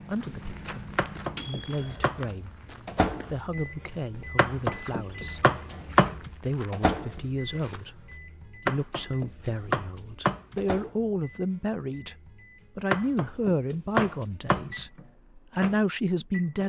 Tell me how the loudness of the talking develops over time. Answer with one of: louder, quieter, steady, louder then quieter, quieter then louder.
louder.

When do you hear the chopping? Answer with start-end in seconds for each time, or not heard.
0.9-2.2, 4.3-6.3, 8.7-10.7, 12.9-14.8.